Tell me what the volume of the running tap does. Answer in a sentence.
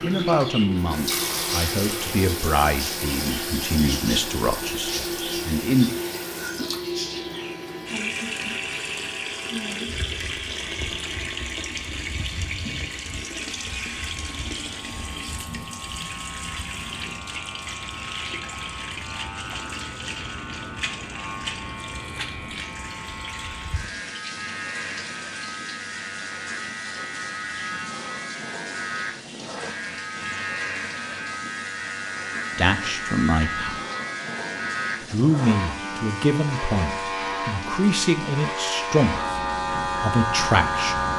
The loudness of the running tap goes down.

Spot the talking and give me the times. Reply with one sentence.
The talking can be heard from 0.0 to 6.0 s, from 32.5 to 33.8 s and from 35.0 to 41.1 s.